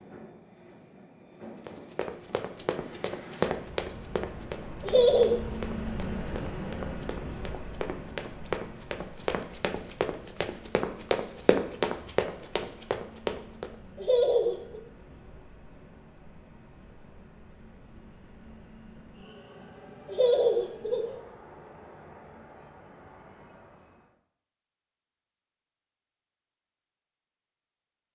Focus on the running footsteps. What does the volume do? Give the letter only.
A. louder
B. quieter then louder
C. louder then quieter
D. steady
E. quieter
B.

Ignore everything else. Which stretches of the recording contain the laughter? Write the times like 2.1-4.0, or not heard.
4.8-5.3, 13.9-14.8, 20.1-21.1.